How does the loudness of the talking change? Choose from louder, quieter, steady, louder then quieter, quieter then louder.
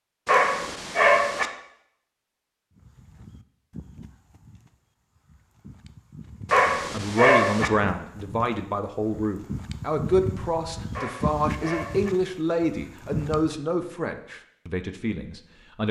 quieter.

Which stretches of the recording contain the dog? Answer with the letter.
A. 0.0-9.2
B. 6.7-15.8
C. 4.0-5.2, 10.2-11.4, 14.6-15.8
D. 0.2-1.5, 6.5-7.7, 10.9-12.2
D.